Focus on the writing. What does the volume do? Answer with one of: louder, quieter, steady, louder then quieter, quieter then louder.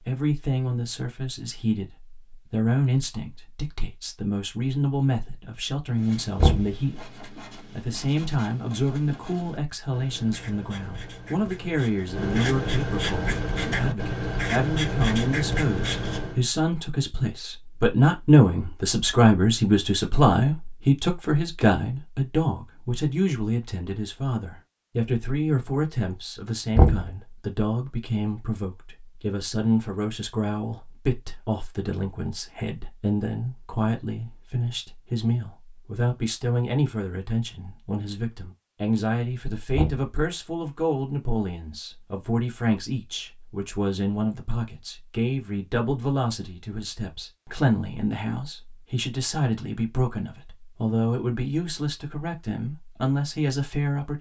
louder.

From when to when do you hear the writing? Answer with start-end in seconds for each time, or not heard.
5.9-16.4.